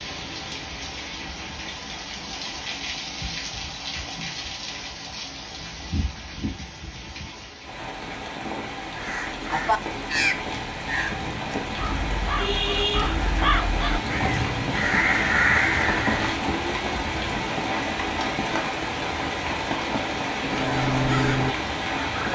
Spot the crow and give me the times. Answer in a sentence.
The crow can be heard from 8.9 to 16.4 s and from 20.4 to 22.3 s.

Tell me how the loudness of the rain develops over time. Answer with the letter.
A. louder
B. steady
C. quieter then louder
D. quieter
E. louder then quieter
A.